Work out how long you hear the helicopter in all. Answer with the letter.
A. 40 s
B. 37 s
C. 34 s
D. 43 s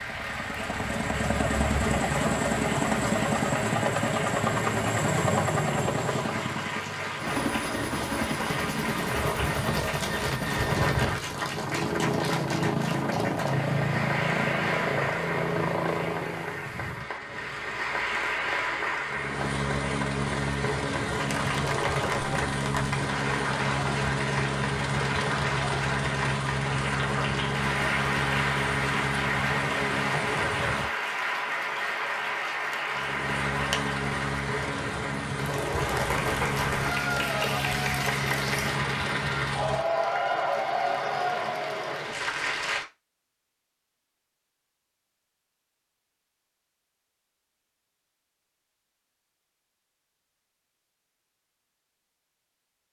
A.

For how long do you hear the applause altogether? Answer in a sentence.
The applause can be heard for 43 seconds in total.